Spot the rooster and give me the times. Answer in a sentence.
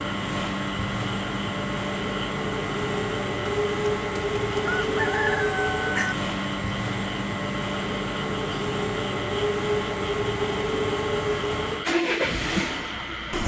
You can hear the rooster from 4.3 to 6.2 s.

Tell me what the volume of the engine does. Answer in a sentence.
The volume of the engine stays about the same.